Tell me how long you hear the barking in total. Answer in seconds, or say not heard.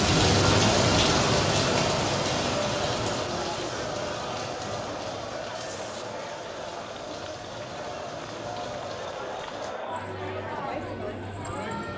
not heard.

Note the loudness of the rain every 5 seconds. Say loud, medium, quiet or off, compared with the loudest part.
loud, quiet, off.